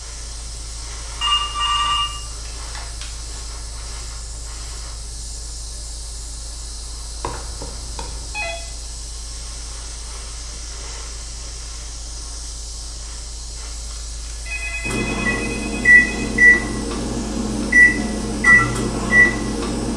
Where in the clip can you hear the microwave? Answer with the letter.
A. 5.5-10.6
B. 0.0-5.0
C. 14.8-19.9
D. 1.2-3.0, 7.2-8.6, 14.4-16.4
C.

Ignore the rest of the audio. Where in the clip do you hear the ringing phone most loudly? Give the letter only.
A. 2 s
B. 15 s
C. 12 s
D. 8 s
A.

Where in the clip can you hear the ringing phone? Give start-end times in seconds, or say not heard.
1.2-3.0, 7.2-8.6, 14.4-16.4.